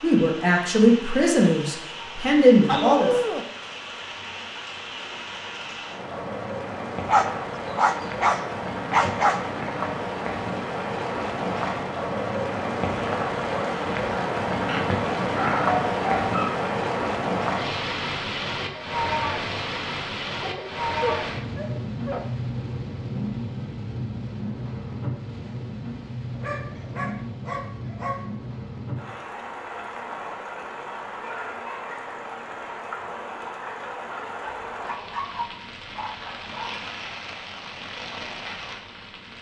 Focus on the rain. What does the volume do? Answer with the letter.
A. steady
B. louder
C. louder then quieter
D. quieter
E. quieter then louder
C.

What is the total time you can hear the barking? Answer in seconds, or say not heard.
11 s.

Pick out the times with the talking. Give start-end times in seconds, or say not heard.
0.0-3.1.